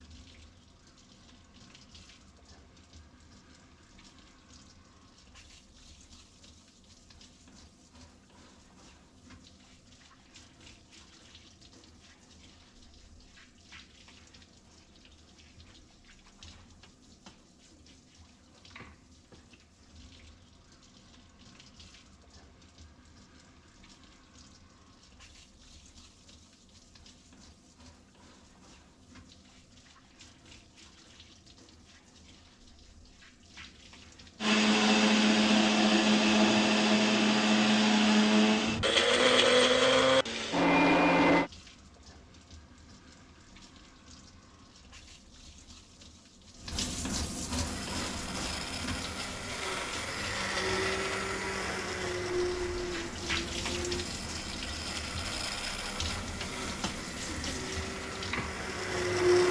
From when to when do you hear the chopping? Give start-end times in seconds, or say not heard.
not heard.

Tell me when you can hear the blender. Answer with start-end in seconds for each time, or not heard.
34.4-41.5, 47.6-59.4.